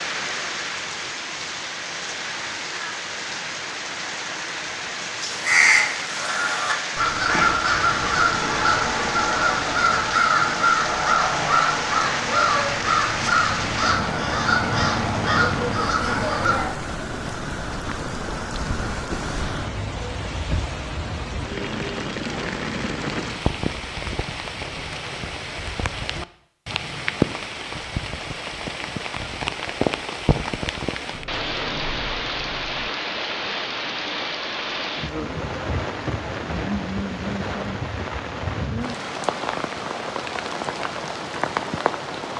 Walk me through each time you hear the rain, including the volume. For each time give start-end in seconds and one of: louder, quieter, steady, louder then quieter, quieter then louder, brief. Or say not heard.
0.0-42.3 steady.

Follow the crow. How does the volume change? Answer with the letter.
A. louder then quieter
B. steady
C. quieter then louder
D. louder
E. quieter
B.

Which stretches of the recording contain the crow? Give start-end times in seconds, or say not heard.
5.2-16.8.